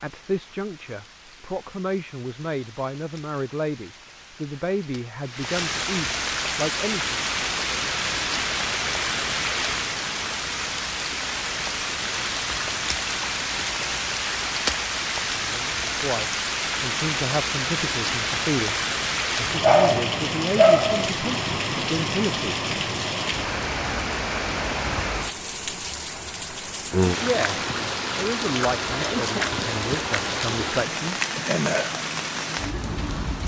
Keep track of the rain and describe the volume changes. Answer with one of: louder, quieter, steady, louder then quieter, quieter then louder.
louder.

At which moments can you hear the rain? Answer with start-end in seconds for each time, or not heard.
0.0-33.4.